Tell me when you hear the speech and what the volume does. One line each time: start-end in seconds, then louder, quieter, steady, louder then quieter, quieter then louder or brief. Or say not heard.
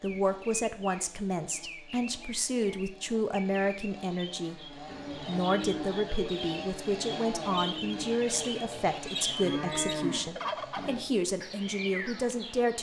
0.0-12.7 steady.